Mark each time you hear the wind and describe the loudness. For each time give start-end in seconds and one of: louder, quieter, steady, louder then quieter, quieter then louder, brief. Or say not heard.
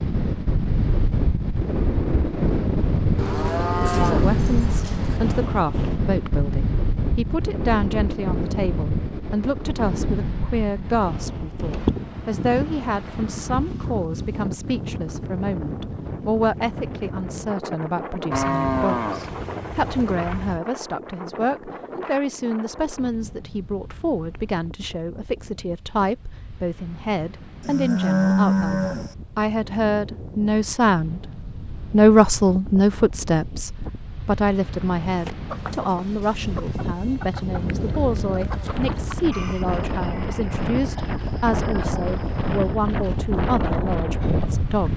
0.0-44.9 quieter then louder.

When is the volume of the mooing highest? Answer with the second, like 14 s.
28 s.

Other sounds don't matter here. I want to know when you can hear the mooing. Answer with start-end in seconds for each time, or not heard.
3.1-5.2, 18.3-20.6, 27.6-29.1, 37.5-39.2.